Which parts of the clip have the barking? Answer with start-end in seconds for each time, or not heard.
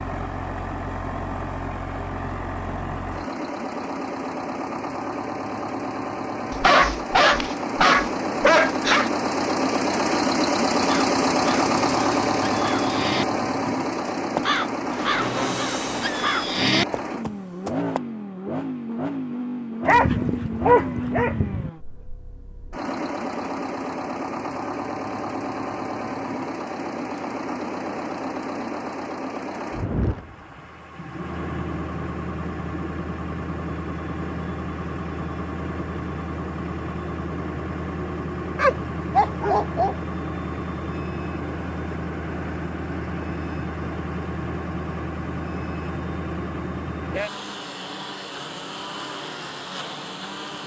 6.5-9.1, 19.9-21.7, 38.5-40.0.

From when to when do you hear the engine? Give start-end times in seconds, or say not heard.
0.0-50.6.